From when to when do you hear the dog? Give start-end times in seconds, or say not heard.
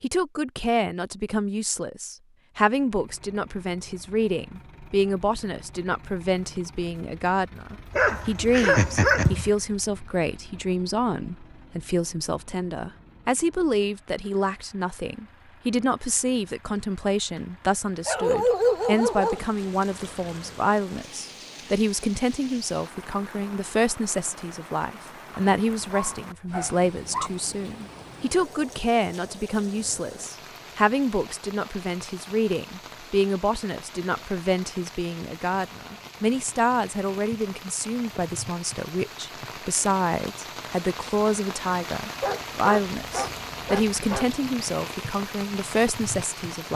8.0-9.5, 18.1-19.4, 25.3-27.3, 42.2-44.3.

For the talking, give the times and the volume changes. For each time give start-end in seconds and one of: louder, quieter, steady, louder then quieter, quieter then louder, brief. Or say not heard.
0.0-46.7 steady.